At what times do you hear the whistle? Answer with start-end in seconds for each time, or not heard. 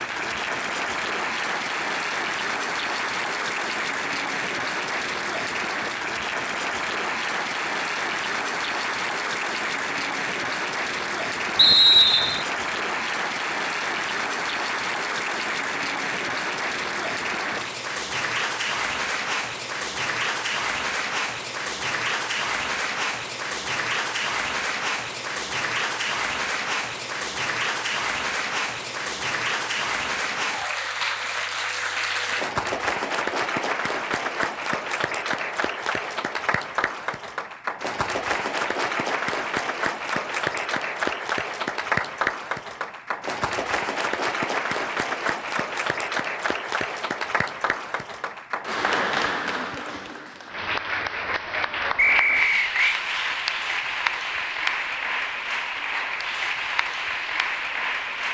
11.6-12.4, 52.0-53.0.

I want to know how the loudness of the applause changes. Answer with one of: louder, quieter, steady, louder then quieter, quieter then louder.
steady.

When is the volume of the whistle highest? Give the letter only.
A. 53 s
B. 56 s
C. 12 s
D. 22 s
C.